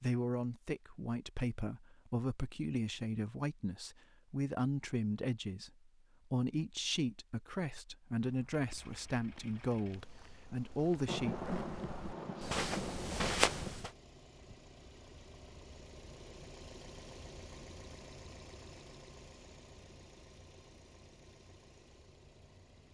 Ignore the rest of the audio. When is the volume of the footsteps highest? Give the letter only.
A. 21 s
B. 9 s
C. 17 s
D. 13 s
D.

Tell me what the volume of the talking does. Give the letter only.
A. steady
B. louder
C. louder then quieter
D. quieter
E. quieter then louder
A.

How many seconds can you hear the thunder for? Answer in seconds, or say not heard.
3 s.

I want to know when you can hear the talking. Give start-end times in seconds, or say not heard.
0.0-11.3.